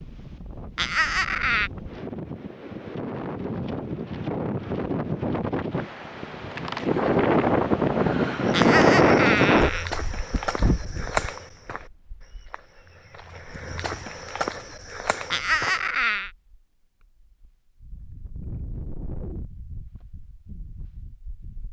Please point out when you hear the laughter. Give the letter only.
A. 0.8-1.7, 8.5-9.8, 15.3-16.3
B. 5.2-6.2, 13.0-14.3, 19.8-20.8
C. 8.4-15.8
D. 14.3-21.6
A.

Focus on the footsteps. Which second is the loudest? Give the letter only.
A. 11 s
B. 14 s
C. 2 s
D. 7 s
A.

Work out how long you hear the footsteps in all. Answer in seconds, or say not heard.
7 s.